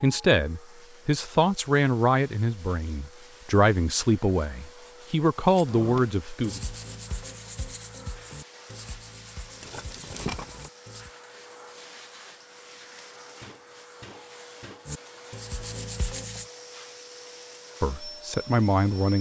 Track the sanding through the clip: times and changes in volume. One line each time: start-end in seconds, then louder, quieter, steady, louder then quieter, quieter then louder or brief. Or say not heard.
5.7-11.1 quieter
14.8-16.4 brief.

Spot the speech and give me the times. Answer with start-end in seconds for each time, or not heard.
0.0-6.6, 17.8-19.1.